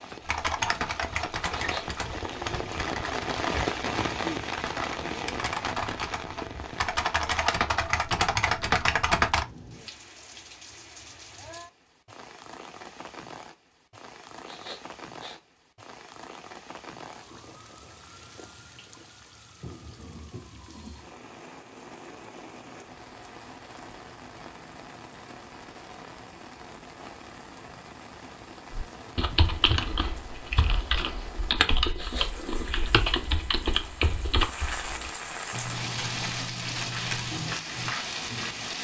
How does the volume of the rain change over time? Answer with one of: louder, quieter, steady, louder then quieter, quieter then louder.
quieter then louder.